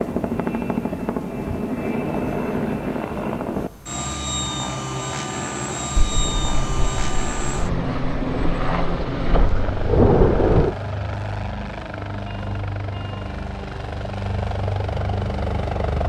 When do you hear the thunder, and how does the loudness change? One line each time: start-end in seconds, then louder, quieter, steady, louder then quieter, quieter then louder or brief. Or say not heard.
6.0-10.8 louder.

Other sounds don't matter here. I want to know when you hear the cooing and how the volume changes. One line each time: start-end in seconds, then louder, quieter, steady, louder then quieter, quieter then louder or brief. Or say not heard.
not heard.